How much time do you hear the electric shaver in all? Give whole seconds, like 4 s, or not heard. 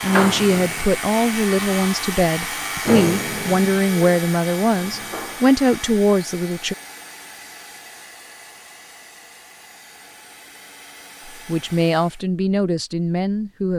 6 s.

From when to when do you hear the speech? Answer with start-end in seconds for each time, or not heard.
0.0-6.8, 11.3-13.7.